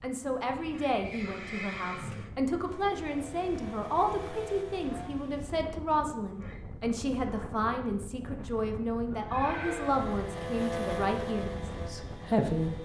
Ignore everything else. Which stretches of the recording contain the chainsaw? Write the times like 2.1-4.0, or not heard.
2.5-5.5, 9.6-12.8.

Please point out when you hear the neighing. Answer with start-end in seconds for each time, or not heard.
0.2-2.3, 6.1-6.6, 9.1-9.9.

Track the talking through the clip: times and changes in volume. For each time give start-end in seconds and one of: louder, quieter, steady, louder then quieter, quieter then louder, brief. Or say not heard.
0.0-12.8 steady.